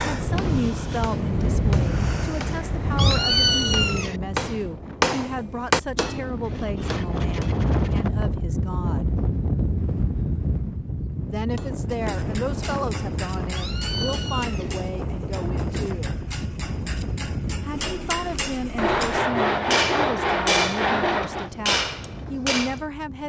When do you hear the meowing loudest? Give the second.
3 s.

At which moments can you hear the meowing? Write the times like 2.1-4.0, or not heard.
3.0-4.2, 13.6-14.8.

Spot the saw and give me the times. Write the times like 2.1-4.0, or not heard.
6.5-8.1, 18.8-21.5.